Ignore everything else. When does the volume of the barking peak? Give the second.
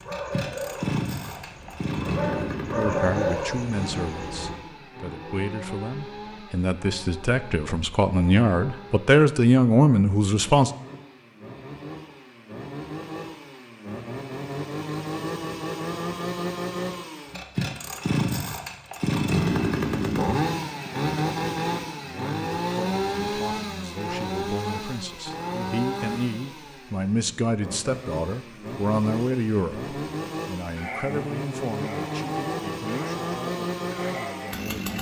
3 s.